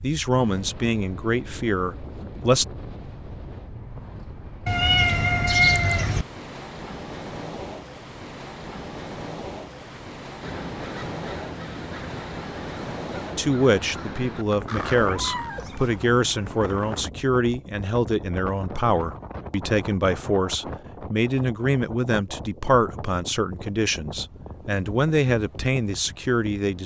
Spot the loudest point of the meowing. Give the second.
6 s.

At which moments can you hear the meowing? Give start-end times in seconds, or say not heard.
4.7-6.2, 14.9-16.4.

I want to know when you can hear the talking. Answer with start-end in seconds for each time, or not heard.
0.0-2.6, 13.3-26.8.